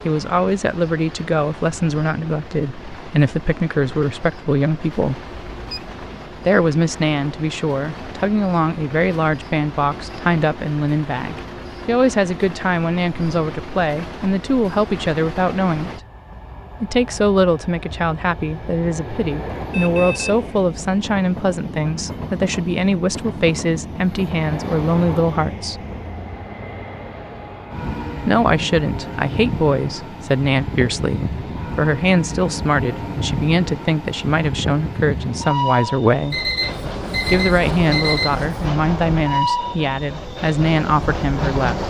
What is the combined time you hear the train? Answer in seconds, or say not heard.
42 s.